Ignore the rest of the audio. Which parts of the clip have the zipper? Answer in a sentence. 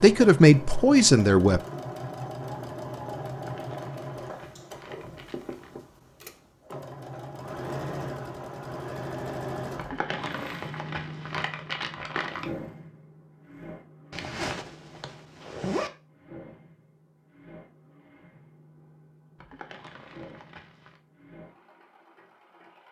The zipper can be heard from 14.1 to 15.9 s.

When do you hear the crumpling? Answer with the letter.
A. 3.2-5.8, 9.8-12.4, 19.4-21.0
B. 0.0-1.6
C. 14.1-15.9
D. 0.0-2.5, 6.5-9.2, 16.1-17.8
A.